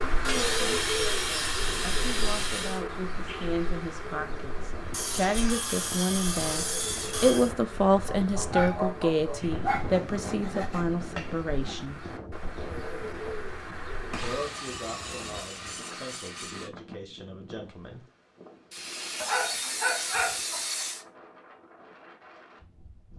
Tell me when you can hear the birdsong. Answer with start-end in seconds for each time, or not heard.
0.0-14.3.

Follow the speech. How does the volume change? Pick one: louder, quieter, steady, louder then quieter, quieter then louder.
louder then quieter.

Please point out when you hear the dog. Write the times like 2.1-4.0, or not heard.
8.2-9.8, 19.2-20.9.